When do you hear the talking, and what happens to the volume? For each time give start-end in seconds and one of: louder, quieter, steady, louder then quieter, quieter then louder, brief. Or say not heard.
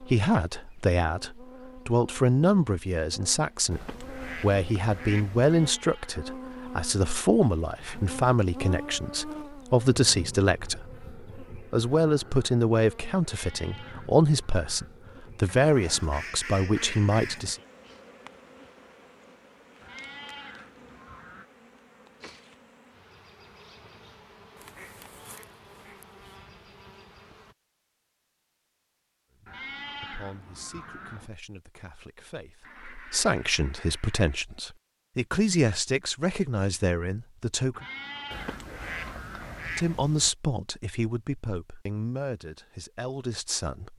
0.0-17.6 steady
29.4-37.9 louder
39.8-43.9 quieter.